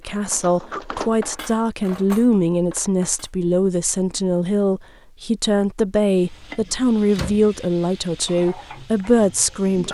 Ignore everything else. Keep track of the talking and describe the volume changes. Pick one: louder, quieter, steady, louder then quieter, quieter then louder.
steady.